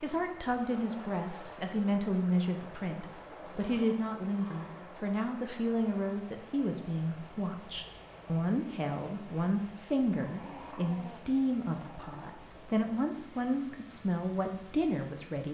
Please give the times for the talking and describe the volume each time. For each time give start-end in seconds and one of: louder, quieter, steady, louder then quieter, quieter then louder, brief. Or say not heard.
0.0-15.4 steady.